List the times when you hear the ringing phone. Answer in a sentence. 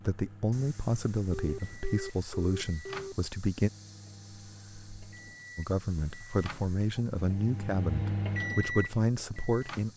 The ringing phone can be heard from 1.3 to 3.4 s.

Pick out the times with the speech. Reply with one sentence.
The speech can be heard from 0.1 to 3.7 s and from 5.5 to 9.9 s.